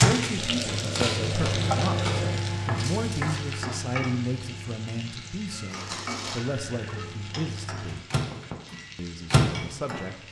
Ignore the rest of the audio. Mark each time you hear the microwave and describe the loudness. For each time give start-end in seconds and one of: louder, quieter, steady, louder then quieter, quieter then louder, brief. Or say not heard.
0.0-10.1 quieter then louder.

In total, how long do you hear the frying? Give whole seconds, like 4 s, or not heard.
10 s.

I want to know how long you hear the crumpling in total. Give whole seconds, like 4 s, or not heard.
3 s.